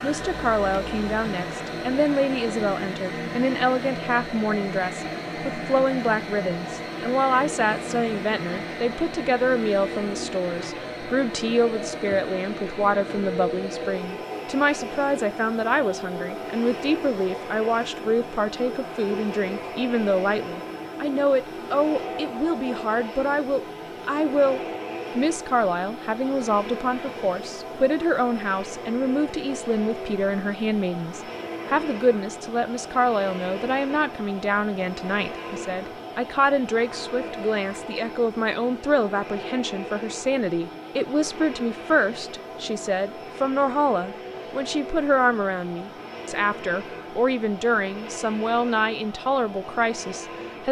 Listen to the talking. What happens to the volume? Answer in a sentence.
The volume of the talking stays about the same.